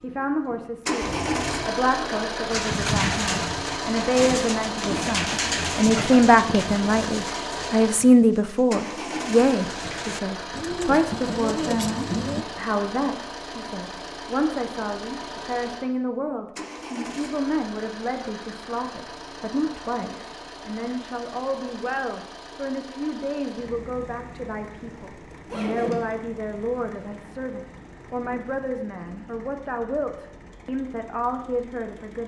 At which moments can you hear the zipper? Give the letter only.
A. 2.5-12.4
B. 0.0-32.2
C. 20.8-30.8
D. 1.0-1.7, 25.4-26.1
D.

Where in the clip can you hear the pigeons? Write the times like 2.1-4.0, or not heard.
2.5-12.4.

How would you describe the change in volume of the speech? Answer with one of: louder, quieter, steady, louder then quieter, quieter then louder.
quieter.